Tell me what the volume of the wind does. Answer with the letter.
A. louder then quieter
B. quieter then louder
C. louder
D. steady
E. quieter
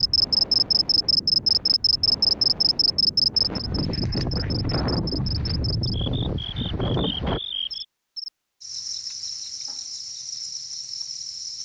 C.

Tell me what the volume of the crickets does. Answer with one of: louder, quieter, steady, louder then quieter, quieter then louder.
quieter.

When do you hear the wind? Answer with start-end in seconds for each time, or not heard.
0.0-7.4.